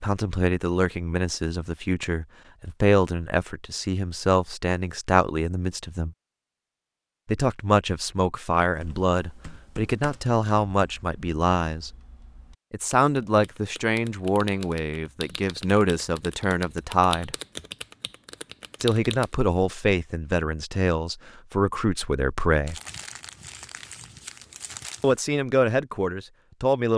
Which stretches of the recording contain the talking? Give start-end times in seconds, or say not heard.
0.0-6.2, 7.2-11.9, 12.7-17.4, 18.8-22.8, 25.0-26.9.